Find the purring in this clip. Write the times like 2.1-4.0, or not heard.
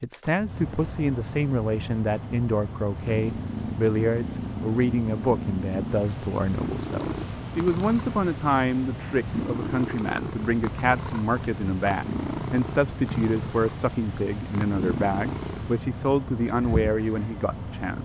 2.9-17.3.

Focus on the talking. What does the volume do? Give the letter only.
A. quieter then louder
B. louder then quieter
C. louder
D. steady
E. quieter
D.